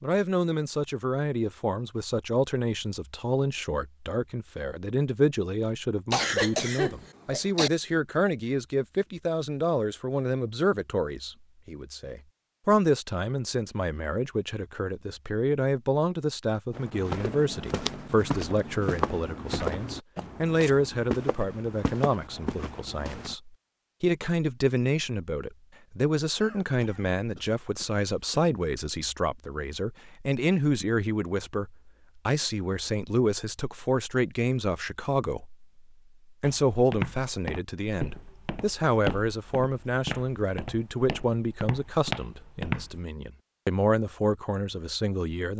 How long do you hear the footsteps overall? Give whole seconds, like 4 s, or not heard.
13 s.